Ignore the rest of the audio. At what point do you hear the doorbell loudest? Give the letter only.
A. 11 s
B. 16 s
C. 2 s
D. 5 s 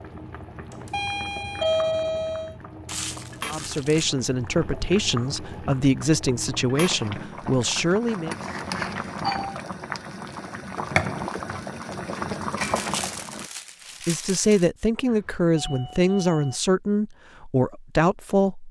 C.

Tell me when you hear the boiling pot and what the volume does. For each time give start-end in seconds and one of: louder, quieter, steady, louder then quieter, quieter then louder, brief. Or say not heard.
0.0-13.4 louder.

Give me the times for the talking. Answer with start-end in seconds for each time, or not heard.
3.5-8.3, 14.1-18.6.